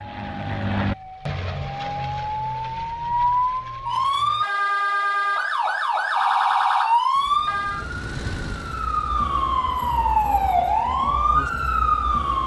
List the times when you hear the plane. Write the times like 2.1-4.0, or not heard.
0.0-4.5, 7.1-9.3.